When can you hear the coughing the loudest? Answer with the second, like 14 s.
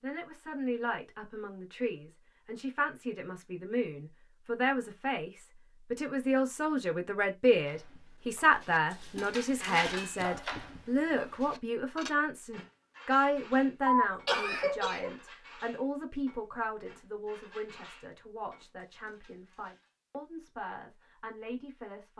14 s.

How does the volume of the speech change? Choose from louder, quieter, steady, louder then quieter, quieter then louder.
louder then quieter.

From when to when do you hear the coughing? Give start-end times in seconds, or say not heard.
13.8-15.2.